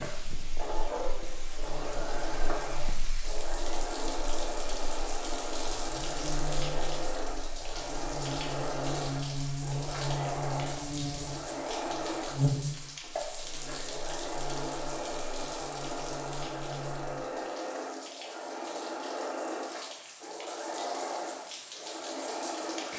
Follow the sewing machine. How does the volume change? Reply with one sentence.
The volume of the sewing machine stays about the same.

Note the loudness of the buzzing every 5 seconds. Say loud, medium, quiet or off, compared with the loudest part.
quiet, loud, loud, medium, off.